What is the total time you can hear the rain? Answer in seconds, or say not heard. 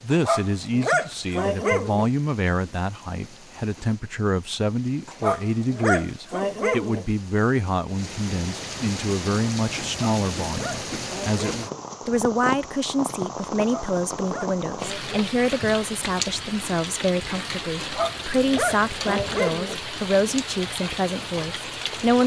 22 s.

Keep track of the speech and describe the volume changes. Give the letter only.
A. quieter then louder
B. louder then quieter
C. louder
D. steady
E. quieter
D.